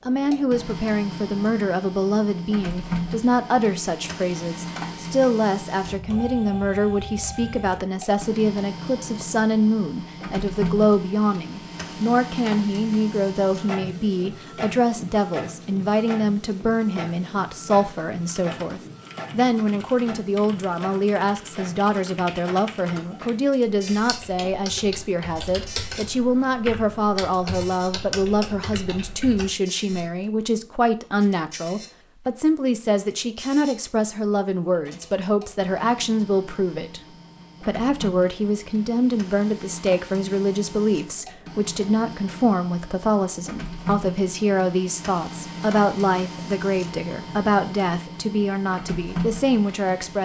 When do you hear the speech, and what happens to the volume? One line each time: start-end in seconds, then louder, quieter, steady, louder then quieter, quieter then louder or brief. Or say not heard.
0.1-37.0 steady
37.6-50.2 steady.